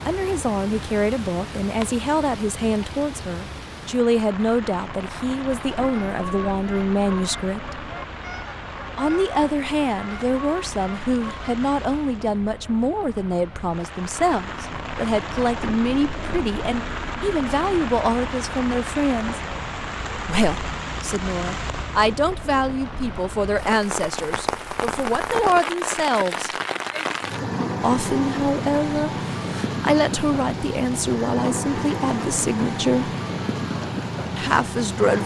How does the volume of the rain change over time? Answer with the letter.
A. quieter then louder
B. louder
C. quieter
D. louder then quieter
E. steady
B.